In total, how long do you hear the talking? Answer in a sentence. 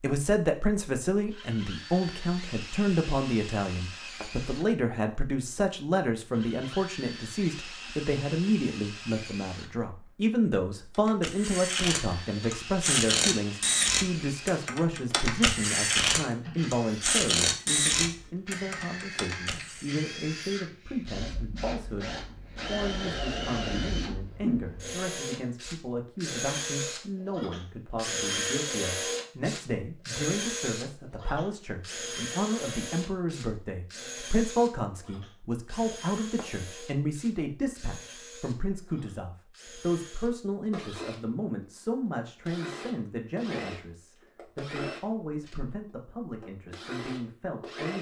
You can hear the talking for 48 seconds altogether.